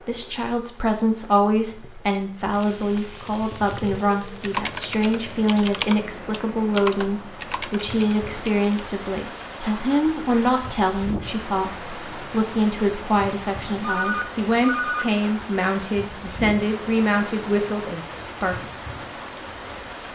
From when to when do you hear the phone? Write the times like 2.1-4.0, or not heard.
13.8-15.1.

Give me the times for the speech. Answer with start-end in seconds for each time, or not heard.
0.1-18.7.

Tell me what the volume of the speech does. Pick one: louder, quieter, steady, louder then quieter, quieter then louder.
steady.